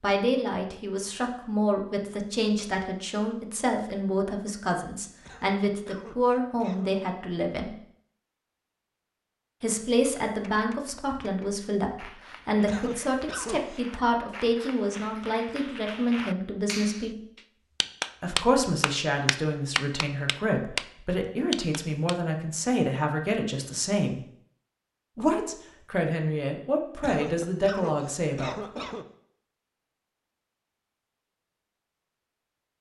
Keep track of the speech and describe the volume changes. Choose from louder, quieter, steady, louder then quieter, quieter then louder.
steady.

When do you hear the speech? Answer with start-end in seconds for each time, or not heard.
0.0-7.8, 9.6-17.2, 18.2-24.2, 25.1-28.9.